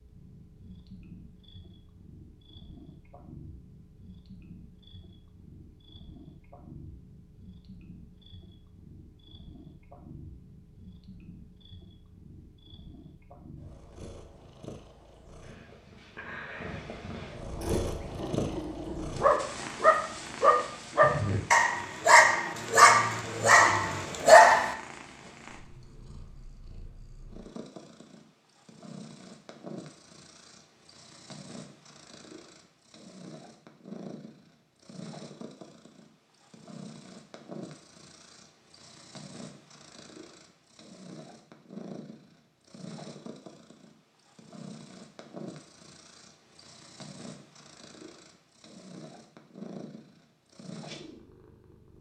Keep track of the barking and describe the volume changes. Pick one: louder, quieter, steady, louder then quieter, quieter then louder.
louder.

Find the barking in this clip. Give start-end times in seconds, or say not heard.
17.6-24.8.